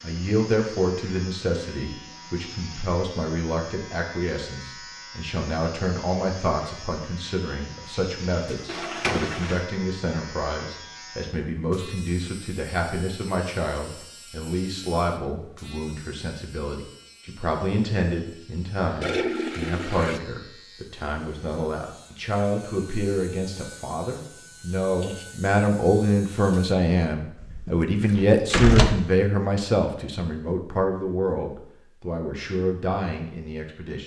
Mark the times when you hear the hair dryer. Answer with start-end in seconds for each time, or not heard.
not heard.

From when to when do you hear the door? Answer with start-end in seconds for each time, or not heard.
8.4-9.4, 27.4-28.9.